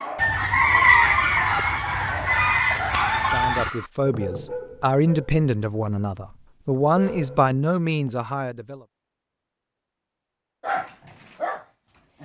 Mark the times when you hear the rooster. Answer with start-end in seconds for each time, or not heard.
0.1-3.7.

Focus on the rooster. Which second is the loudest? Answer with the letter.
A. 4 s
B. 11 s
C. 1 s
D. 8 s
C.